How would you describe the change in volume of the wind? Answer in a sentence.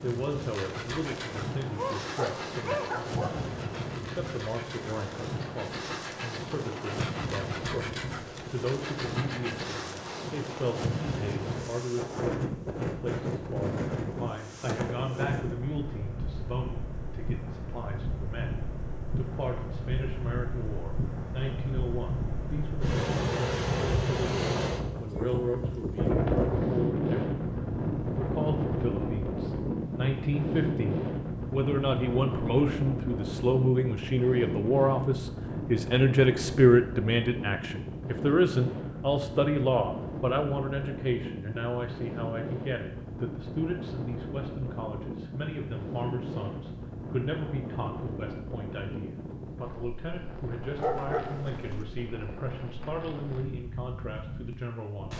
The volume of the wind goes up, then down.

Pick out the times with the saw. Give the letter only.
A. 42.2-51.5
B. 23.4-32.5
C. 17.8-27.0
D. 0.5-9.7
D.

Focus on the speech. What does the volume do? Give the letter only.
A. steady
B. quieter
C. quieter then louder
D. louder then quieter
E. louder
D.